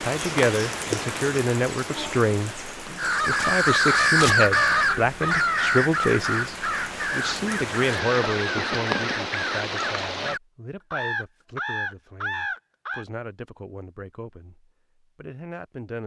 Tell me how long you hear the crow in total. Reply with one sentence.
You can hear the crow for 10 seconds altogether.